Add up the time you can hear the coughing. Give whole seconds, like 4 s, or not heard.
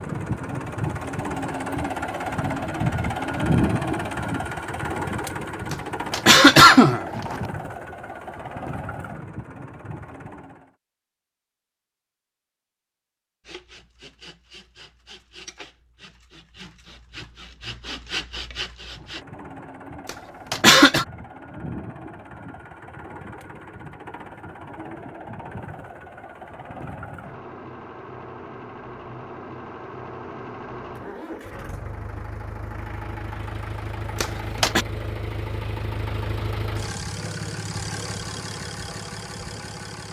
3 s.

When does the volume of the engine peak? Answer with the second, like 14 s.
3 s.